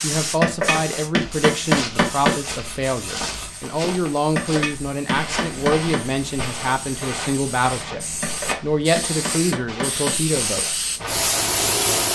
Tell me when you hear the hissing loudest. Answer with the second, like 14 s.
12 s.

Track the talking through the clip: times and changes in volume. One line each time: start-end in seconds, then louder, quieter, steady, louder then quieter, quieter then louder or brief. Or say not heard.
0.0-10.8 steady.